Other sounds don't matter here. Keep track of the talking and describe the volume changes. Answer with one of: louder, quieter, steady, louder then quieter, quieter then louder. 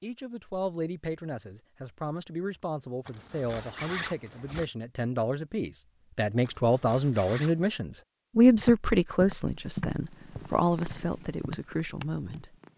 louder then quieter.